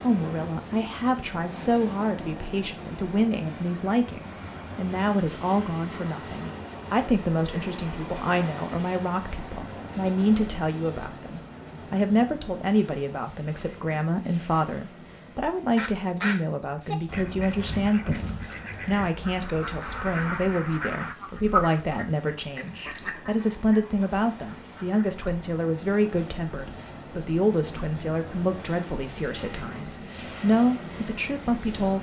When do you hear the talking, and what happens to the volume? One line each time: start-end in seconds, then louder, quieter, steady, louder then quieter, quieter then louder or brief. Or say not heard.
0.0-31.9 steady.